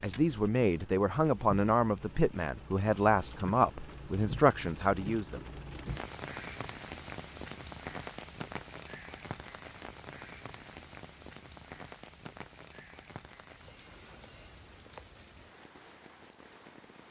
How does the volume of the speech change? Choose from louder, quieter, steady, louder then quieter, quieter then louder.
steady.